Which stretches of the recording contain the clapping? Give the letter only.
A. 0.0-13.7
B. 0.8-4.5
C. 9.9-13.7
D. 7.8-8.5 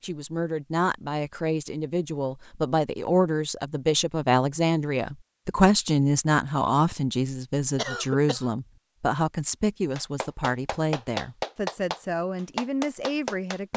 C.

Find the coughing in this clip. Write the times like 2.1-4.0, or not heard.
7.8-8.5.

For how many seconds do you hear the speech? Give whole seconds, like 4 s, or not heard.
14 s.